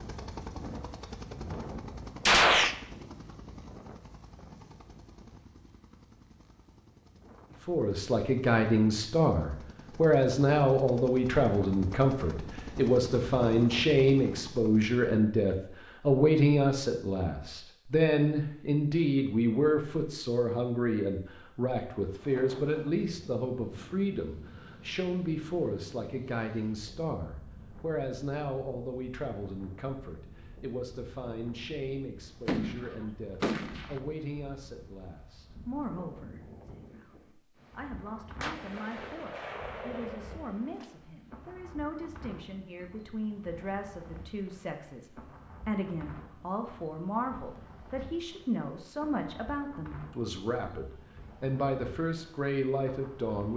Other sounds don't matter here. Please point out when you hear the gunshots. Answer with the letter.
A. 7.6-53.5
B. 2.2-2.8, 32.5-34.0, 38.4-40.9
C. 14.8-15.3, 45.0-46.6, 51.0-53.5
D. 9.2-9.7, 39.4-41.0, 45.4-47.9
B.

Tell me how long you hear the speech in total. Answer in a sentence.
The speech can be heard for 46 seconds in total.